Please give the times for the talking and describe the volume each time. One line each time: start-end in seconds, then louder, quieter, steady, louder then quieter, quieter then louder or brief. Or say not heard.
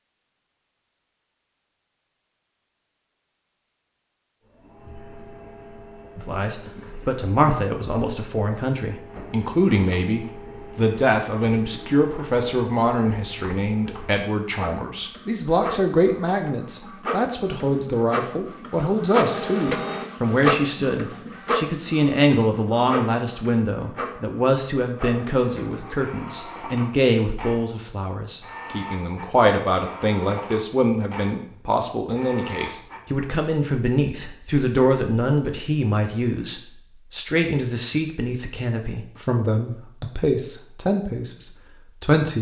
6.2-42.3 steady.